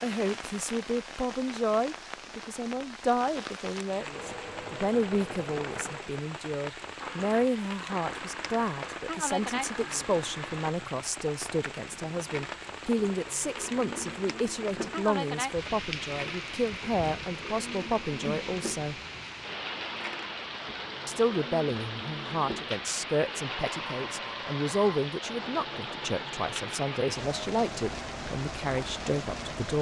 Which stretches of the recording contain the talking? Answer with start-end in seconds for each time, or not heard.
0.0-18.9, 21.1-29.7.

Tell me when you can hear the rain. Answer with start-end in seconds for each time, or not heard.
0.0-29.7.